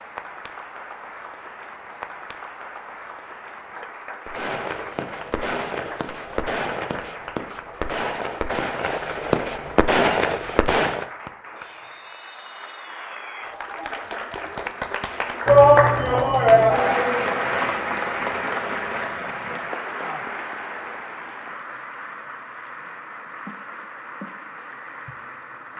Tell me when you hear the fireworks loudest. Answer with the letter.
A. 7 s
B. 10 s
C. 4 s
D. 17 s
B.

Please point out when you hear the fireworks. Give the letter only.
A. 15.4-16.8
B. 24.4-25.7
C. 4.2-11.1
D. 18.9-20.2
C.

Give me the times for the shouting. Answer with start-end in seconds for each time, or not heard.
15.4-16.8.